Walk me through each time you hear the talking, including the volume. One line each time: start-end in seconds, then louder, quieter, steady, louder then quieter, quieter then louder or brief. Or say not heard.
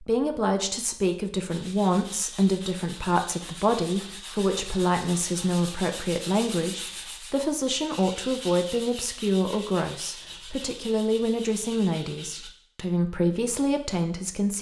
0.0-14.5 steady.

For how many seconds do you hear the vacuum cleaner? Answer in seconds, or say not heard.
not heard.